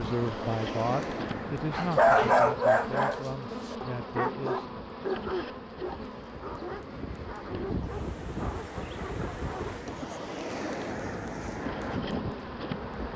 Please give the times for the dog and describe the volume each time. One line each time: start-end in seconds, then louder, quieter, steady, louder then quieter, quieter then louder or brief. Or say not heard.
1.7-9.8 quieter.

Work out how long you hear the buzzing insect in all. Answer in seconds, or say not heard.
13 s.